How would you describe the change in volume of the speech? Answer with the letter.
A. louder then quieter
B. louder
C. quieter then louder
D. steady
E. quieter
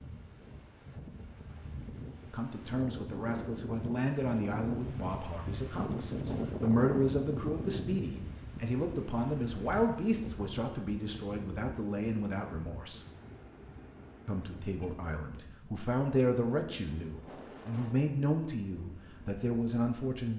D.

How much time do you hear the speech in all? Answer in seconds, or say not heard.
17 s.